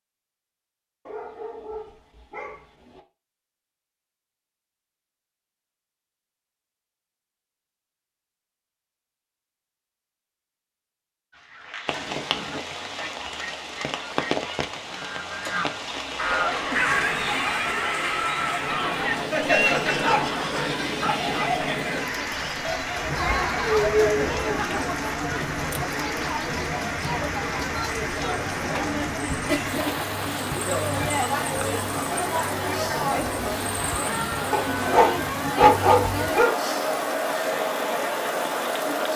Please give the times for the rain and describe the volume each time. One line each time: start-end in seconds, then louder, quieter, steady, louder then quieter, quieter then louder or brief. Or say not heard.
11.8-39.1 steady.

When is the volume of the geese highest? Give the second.
17 s.